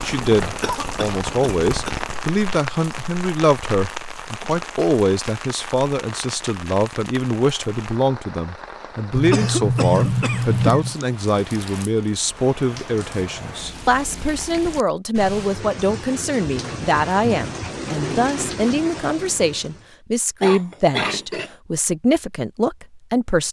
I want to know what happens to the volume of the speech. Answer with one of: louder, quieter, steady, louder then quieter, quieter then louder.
steady.